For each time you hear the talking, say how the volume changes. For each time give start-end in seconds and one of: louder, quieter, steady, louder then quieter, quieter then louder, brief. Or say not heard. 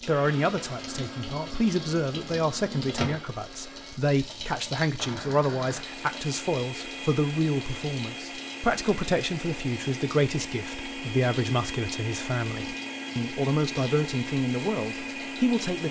0.1-15.8 steady.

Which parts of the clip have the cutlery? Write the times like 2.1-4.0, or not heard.
not heard.